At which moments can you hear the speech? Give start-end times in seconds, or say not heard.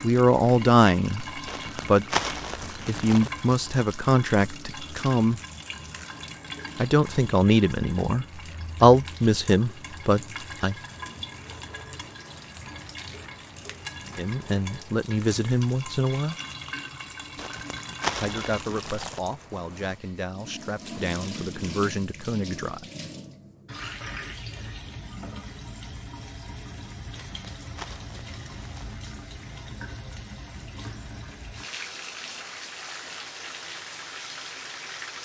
0.0-2.0, 2.9-5.4, 6.8-10.8, 14.2-16.4, 18.1-22.9.